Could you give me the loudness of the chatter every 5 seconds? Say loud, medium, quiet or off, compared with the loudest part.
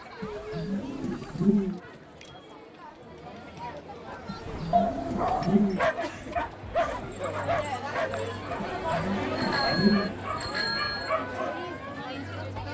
medium, loud, loud.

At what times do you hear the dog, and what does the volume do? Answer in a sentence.
The dog can be heard from 4.1 to 11.6 s, getting quieter.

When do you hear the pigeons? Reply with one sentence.
The pigeons can be heard from 0.2 to 1.8 s, from 4.2 to 5.8 s and from 8.6 to 10.2 s.